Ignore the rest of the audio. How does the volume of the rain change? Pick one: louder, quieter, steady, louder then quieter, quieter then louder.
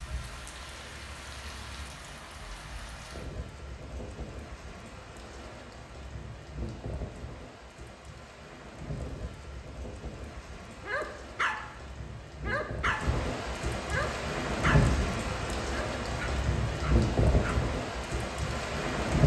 louder.